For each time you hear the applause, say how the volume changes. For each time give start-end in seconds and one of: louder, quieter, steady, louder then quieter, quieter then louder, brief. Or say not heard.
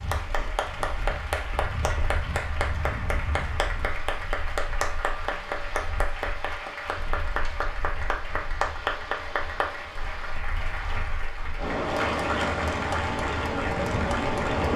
0.0-14.7 steady.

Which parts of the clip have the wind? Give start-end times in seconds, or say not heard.
0.0-14.7.